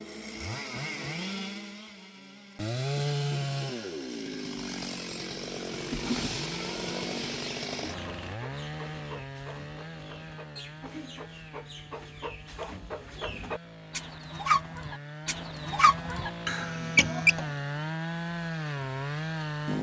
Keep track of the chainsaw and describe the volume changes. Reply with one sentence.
The loudness of the chainsaw goes down, then up.